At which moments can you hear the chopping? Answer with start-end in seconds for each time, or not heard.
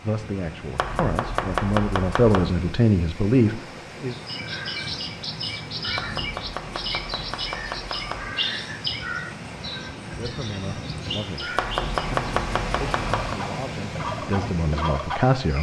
0.8-2.5, 6.0-8.3, 11.6-13.4.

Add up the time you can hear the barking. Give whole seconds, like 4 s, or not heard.
not heard.